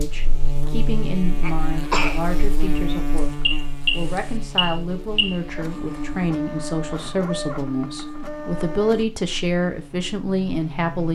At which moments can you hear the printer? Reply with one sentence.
You can hear the printer from 5.5 to 9.1 s.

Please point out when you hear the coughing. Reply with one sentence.
The coughing can be heard from 1.4 to 2.4 s.